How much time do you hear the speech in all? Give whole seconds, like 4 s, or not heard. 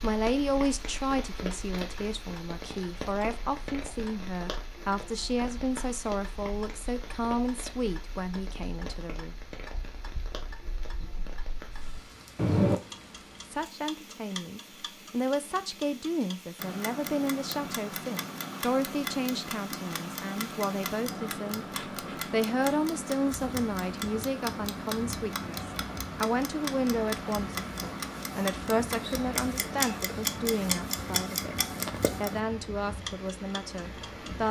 30 s.